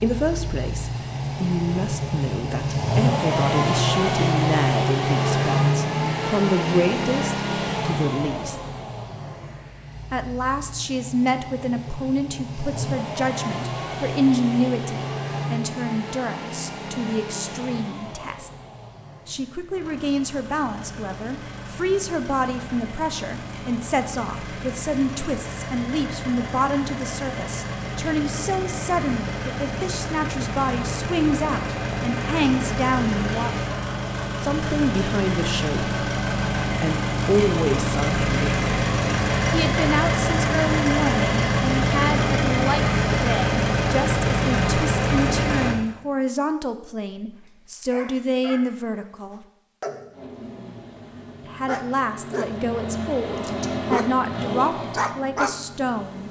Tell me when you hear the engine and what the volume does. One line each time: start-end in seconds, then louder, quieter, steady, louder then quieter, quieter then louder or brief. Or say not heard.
0.0-45.8 quieter then louder
50.1-56.2 louder then quieter.